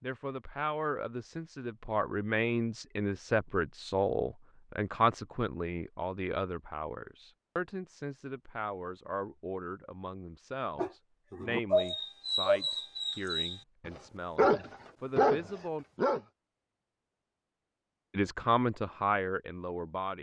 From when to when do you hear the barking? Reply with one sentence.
You can hear the barking from 10.8 to 16.2 s.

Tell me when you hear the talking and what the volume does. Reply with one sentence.
The talking can be heard from 0.0 to 15.8 s, getting quieter; and briefly from 18.1 to 20.1 s.